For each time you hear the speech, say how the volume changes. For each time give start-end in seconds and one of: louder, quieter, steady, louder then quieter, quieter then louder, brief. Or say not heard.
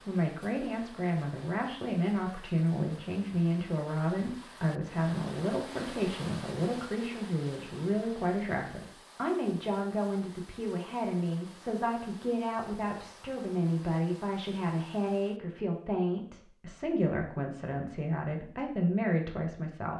0.1-19.9 steady.